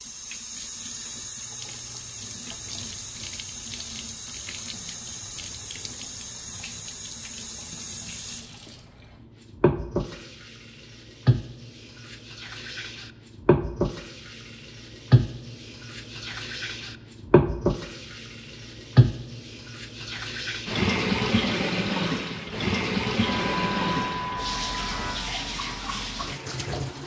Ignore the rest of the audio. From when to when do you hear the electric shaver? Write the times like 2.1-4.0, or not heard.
23.1-25.2.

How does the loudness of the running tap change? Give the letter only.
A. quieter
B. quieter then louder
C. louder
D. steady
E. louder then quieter
C.